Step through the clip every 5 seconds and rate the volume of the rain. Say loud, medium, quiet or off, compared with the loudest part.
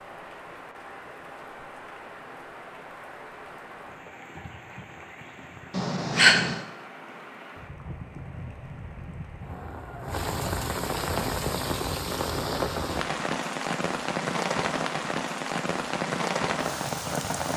quiet, quiet, loud, loud.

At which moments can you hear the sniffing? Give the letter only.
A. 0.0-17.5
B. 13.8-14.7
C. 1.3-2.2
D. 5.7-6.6
D.